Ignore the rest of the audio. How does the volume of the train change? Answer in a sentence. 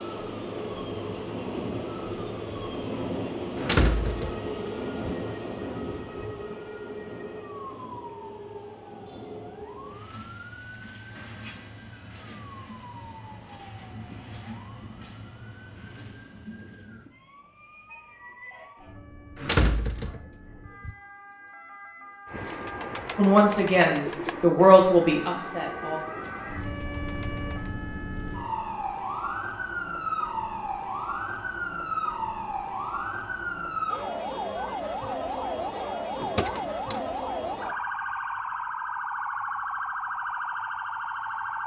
The volume of the train goes down.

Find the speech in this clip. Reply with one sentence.
The speech can be heard from 23.1 to 26.0 s.